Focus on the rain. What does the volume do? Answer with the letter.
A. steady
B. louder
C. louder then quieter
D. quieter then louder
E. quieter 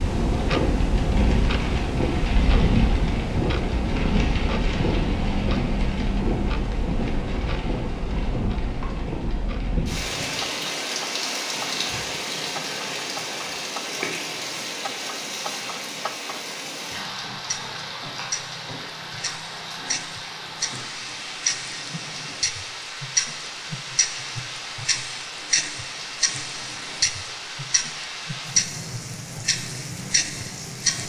E.